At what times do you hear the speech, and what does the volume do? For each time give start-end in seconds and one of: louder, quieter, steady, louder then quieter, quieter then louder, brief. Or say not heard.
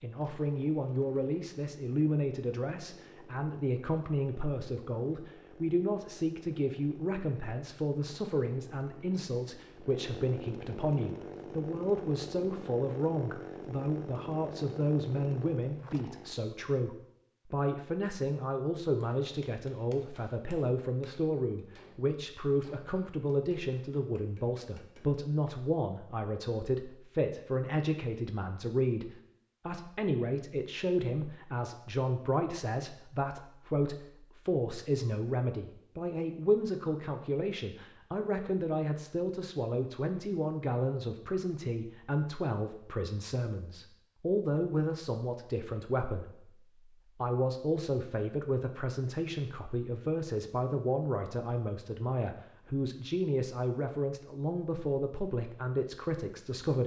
0.0-46.5 steady
47.1-56.8 steady.